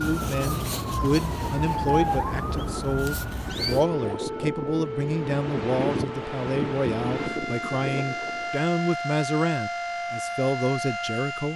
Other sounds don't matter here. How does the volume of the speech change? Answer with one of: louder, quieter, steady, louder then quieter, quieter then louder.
steady.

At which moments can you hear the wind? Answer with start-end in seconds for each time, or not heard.
0.1-8.6.